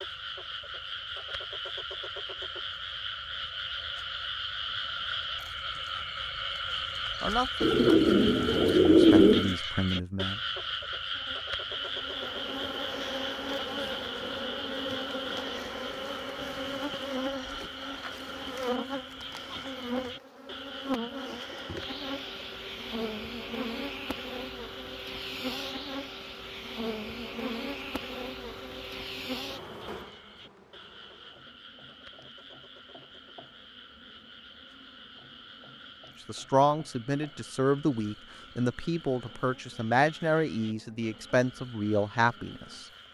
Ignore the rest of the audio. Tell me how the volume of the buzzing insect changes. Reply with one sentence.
The volume of the buzzing insect goes down.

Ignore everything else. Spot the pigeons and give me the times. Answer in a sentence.
The pigeons can be heard from 7.6 to 9.6 s.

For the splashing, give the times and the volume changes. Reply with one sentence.
The splashing can't be heard in this clip.